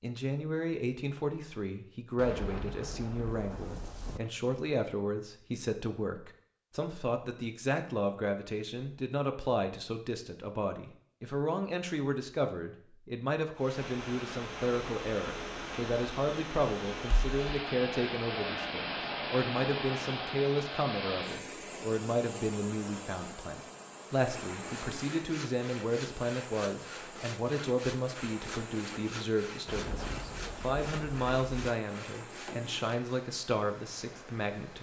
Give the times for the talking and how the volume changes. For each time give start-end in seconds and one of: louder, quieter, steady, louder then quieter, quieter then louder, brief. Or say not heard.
0.0-34.7 steady.